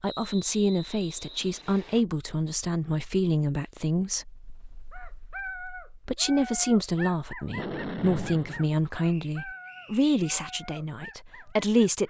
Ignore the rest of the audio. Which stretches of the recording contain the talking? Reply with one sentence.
You can hear the talking from 0.0 to 12.0 s.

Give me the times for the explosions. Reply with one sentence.
You can hear the explosions from 7.5 to 8.7 s.